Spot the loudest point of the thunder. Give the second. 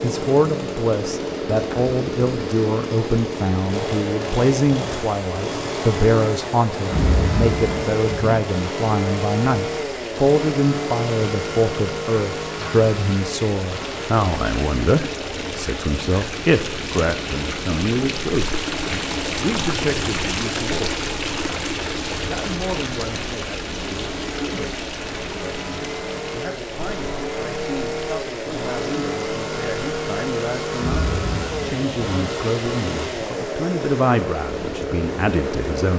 7 s.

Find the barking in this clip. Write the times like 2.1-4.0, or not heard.
not heard.